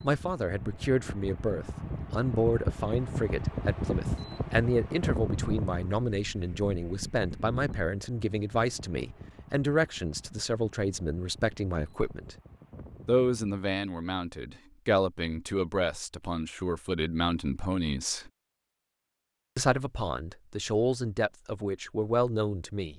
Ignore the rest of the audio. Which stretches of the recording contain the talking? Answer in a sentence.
You can hear the talking from 0.0 to 12.3 s, from 13.1 to 18.3 s and from 19.6 to 22.9 s.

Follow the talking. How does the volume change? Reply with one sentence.
The volume of the talking stays about the same.